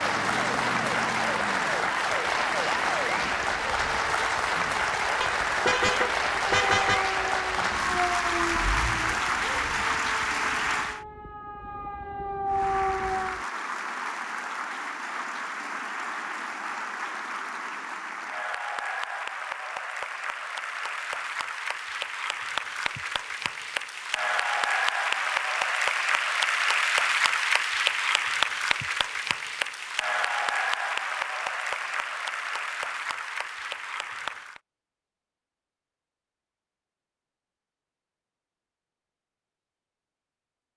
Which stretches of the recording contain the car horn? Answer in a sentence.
You can hear the car horn from 5.2 to 7.0 s.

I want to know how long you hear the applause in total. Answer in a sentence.
The applause can be heard for 33 seconds in total.